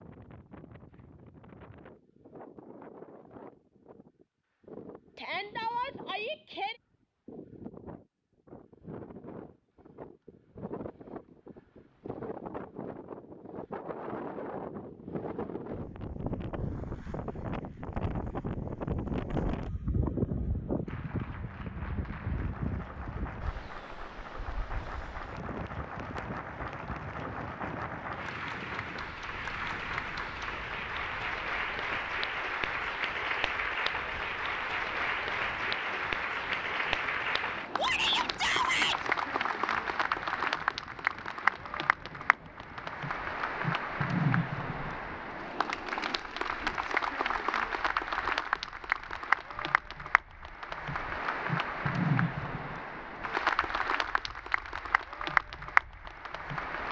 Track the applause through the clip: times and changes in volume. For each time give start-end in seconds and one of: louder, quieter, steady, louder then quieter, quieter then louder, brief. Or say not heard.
20.9-56.8 louder.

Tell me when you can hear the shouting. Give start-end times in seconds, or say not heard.
5.2-6.8, 37.8-39.0.